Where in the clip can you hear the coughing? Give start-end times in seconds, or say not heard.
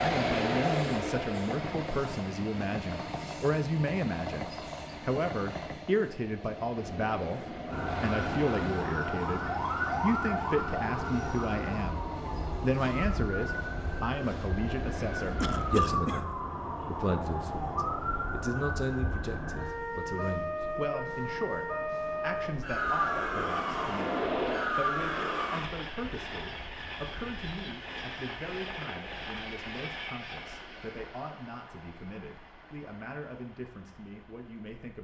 15.4-16.2.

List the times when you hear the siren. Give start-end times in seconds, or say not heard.
7.7-25.6.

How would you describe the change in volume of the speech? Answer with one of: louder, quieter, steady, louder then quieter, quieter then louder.
quieter.